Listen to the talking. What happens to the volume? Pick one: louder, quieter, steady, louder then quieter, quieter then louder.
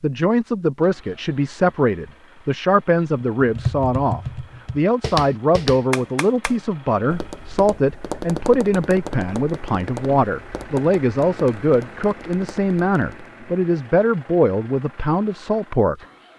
steady.